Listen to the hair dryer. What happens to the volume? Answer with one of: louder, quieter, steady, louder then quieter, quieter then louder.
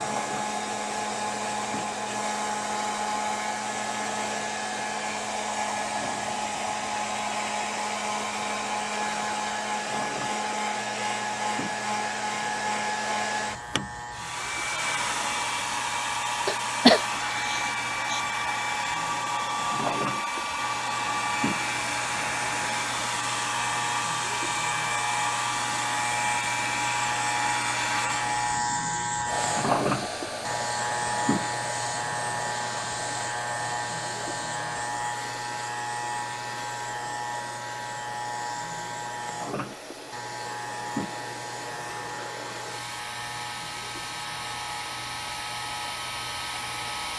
quieter.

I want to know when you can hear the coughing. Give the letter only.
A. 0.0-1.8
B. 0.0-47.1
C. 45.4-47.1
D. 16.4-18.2
D.